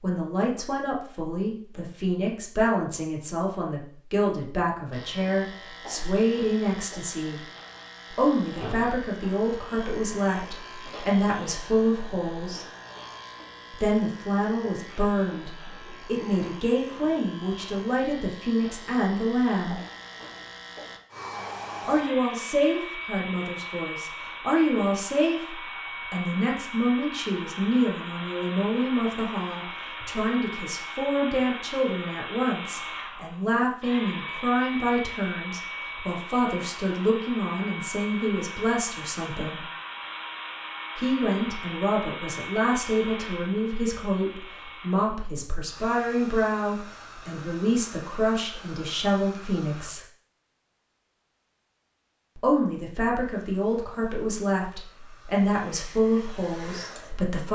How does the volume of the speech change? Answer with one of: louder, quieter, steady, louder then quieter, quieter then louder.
steady.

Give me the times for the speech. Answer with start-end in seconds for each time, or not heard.
0.0-7.4, 8.1-12.7, 13.7-19.8, 21.9-39.6, 41.0-50.0, 52.4-57.5.